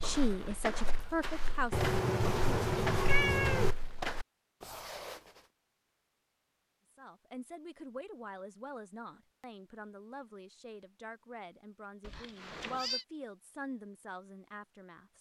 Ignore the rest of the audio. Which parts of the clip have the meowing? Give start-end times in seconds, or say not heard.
1.7-3.8, 12.0-13.1.